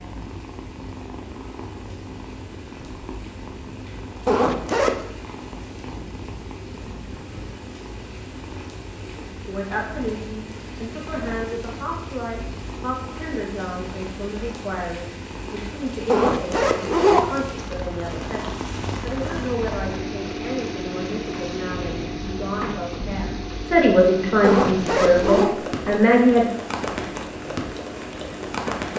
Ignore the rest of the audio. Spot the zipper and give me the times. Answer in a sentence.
You can hear the zipper from 4.2 to 5.0 s, from 16.1 to 17.4 s and from 24.4 to 25.6 s.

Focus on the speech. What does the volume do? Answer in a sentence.
The loudness of the speech goes up.